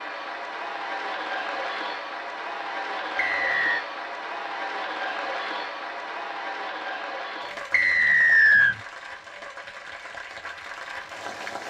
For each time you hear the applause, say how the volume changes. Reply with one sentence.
You can hear the applause from 0.0 to 11.6 s, getting quieter.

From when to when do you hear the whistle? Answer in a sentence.
The whistle can be heard from 3.1 to 3.9 s and from 7.7 to 8.8 s.